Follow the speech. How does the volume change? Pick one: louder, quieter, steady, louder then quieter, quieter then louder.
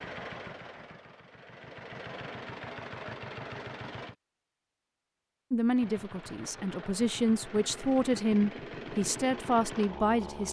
louder.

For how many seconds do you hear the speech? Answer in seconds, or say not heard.
5 s.